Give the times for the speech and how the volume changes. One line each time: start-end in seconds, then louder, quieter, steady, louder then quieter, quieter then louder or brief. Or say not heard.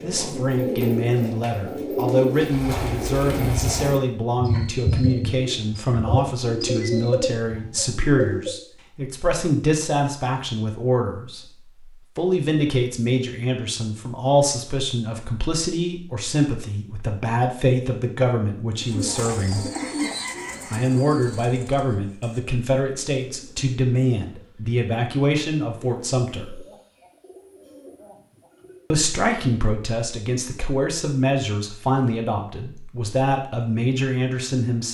0.0-11.5 steady
12.2-19.6 steady
20.7-26.6 steady
28.9-34.8 steady.